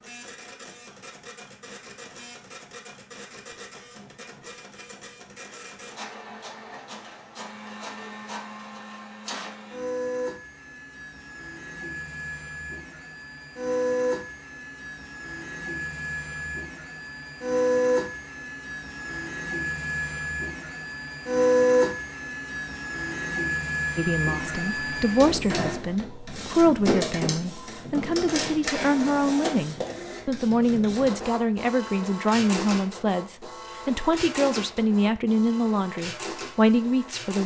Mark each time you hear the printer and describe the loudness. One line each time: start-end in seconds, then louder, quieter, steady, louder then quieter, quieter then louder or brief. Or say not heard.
0.0-37.4 louder then quieter.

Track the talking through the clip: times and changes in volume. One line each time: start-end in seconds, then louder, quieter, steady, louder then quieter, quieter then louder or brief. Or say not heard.
23.9-37.4 steady.